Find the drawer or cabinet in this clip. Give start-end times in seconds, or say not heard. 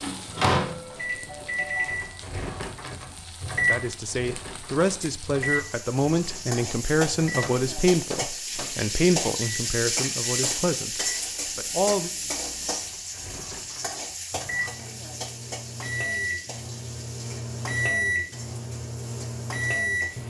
not heard.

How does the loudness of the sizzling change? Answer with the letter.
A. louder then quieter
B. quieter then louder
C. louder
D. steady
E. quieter
A.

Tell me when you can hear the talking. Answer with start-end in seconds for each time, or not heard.
3.6-12.1.